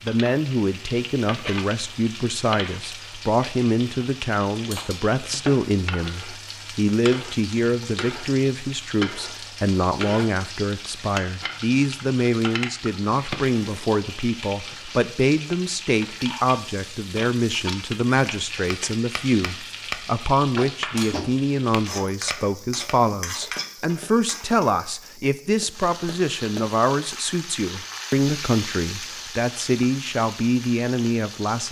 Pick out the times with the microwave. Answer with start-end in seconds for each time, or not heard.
not heard.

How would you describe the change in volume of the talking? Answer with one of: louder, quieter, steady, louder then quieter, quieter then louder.
steady.